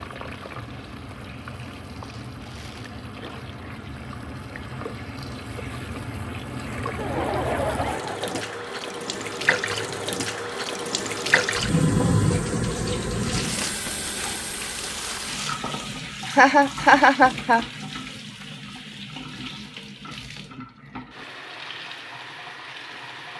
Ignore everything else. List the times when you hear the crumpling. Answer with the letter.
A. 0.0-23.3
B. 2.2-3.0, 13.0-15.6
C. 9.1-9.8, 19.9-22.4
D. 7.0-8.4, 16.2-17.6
B.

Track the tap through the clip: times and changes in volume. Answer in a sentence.
You can hear the tap from 0.0 to 23.3 s, getting louder then quieter.